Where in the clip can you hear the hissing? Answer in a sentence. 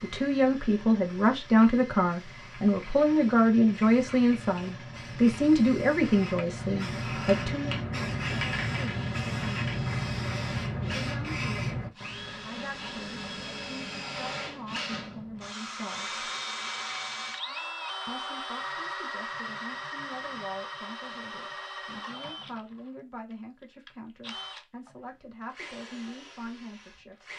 The hissing can be heard from 0.0 to 11.9 s.